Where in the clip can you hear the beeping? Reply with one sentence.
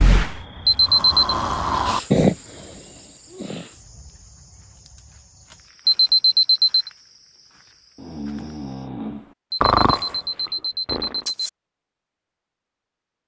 You can hear the beeping from 0.7 to 1.4 s, from 5.8 to 6.9 s and from 9.5 to 11.5 s.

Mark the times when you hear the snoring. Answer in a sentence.
You can hear the snoring from 0.0 to 3.6 s and from 7.7 to 11.3 s.